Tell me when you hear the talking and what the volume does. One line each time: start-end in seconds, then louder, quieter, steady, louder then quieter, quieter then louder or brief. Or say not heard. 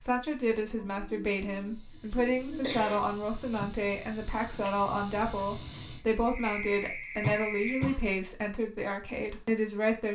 0.0-10.0 steady.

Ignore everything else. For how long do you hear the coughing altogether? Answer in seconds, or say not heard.
3 s.